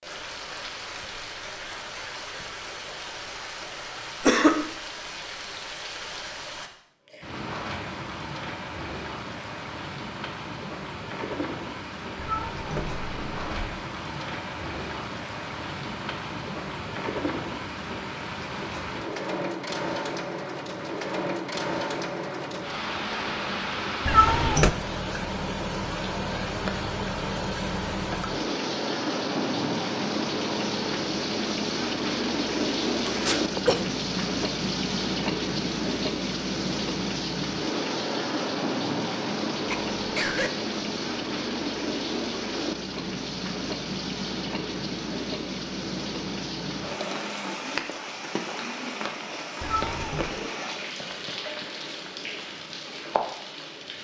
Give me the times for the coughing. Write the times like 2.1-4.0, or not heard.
4.2-4.7, 33.0-33.8, 39.6-40.5.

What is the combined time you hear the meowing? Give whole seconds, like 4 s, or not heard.
3 s.